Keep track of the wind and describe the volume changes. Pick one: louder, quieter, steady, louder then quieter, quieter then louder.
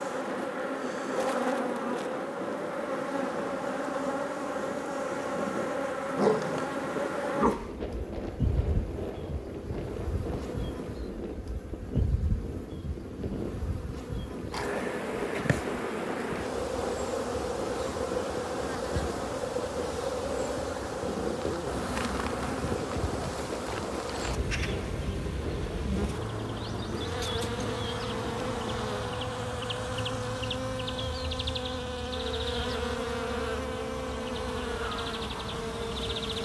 steady.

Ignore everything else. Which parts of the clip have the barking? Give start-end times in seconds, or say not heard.
6.2-7.7.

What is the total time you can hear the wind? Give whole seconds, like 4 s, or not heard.
29 s.